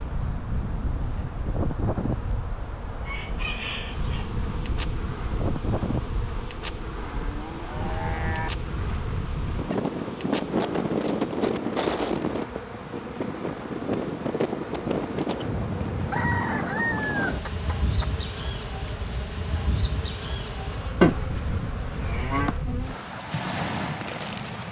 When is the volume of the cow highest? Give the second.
21 s.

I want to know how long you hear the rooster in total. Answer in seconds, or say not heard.
3 s.